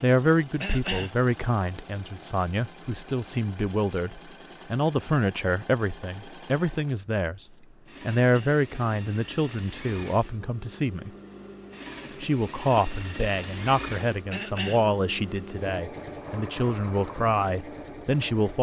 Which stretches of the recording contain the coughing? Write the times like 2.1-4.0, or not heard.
0.6-1.1, 8.2-8.6, 14.3-14.8.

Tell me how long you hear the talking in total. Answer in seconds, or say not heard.
17 s.